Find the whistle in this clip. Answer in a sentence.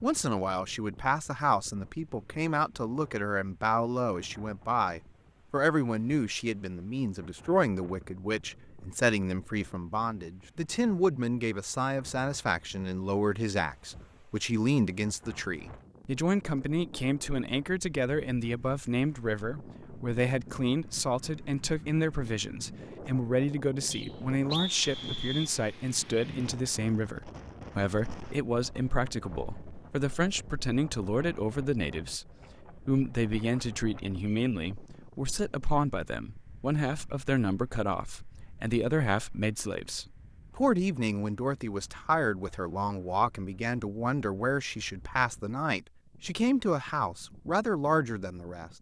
The whistle can be heard from 23.9 to 25.5 s.